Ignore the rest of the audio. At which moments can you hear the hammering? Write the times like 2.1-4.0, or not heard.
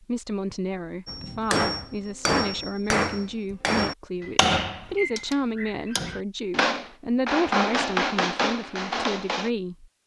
1.1-9.5.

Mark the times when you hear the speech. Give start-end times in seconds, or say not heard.
0.0-9.8.